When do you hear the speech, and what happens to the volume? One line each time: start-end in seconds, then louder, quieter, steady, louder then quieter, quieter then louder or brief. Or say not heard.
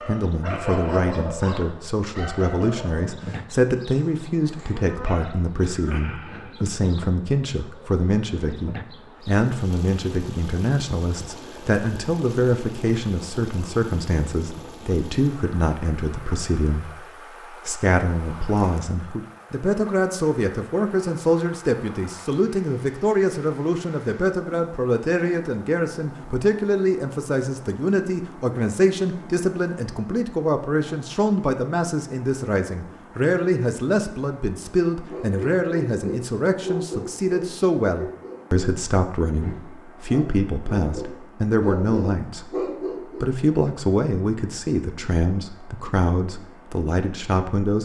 0.1-47.7 steady.